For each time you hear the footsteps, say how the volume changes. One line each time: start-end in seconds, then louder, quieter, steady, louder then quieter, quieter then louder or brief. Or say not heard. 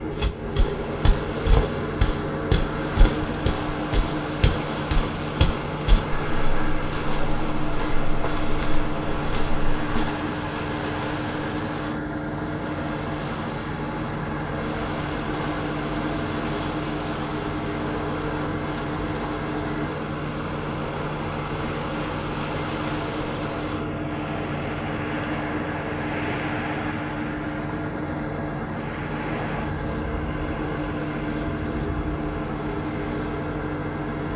0.1-10.1 quieter.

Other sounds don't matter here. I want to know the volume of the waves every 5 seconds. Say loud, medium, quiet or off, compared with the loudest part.
loud, loud, loud, loud, loud, loud, medium.